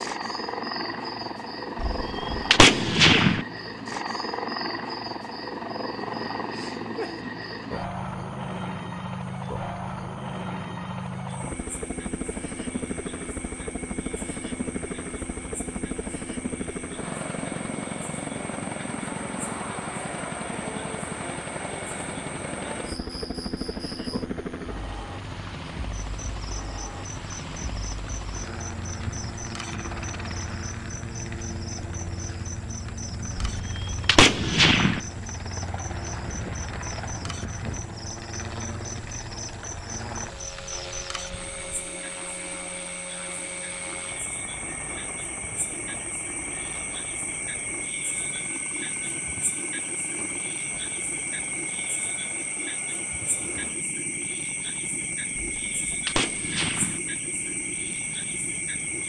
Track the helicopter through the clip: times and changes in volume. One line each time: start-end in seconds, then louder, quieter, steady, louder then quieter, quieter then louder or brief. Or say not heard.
0.0-59.0 quieter.